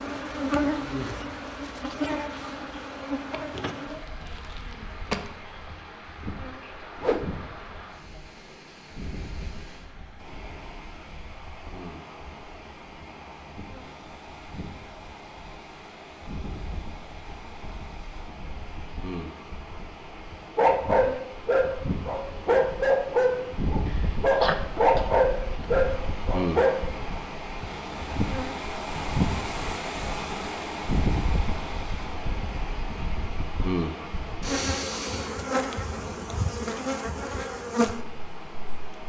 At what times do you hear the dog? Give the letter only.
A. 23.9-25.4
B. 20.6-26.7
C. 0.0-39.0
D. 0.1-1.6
B.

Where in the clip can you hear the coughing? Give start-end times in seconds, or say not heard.
23.9-25.4.